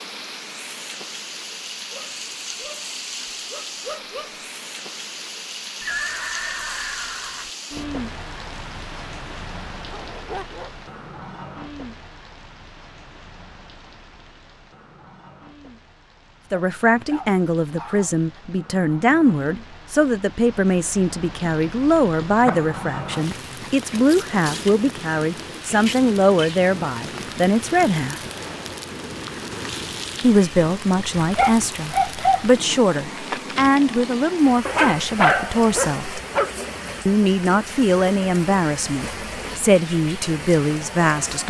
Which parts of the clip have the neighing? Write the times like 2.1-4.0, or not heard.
5.8-7.5.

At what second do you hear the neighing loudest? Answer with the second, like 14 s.
6 s.